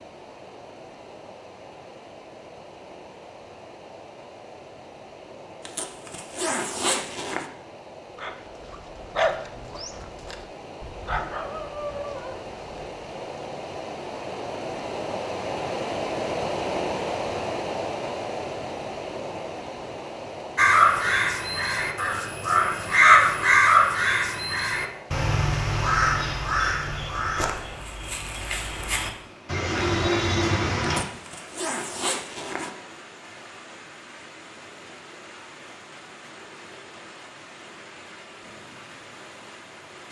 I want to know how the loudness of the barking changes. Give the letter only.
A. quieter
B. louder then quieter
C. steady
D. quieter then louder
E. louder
D.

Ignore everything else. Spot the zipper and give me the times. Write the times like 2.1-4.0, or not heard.
5.7-7.5, 31.1-32.7.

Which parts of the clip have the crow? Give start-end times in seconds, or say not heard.
20.6-31.1.